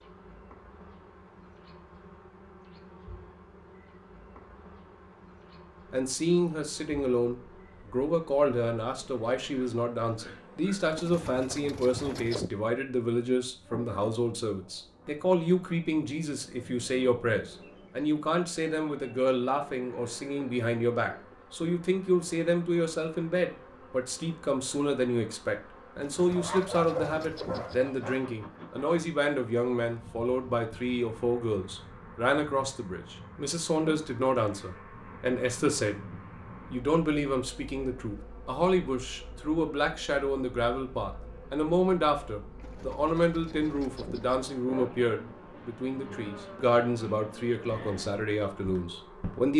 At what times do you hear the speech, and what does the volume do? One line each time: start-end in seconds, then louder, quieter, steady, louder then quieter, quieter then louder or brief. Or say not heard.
5.9-36.0 steady
36.7-49.5 steady.